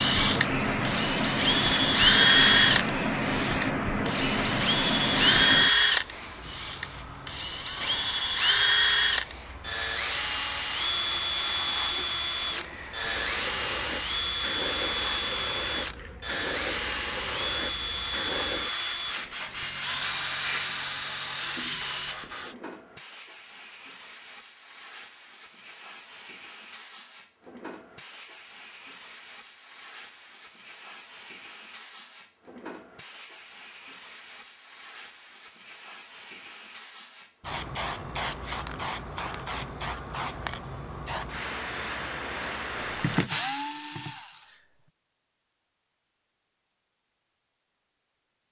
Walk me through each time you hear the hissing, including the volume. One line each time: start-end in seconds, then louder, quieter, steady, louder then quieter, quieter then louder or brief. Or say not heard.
0.0-43.5 quieter then louder.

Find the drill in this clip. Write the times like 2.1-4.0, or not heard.
0.0-22.1, 42.8-44.6.